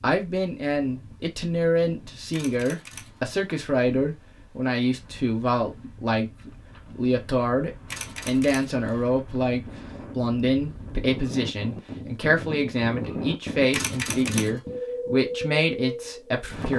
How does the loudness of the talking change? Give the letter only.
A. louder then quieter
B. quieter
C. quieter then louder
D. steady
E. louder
D.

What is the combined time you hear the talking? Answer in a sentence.
The talking can be heard for 17 seconds in total.